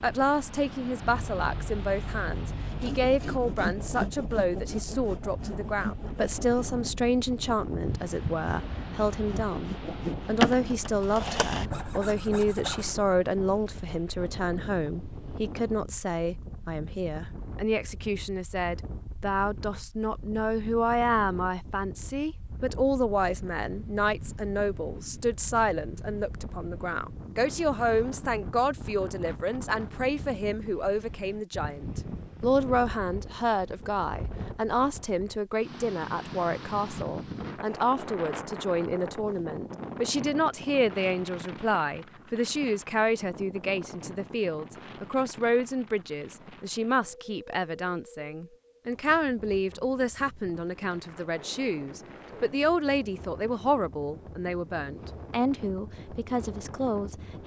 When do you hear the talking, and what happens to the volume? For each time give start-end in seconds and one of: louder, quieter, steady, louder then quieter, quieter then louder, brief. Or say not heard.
0.0-57.4 steady.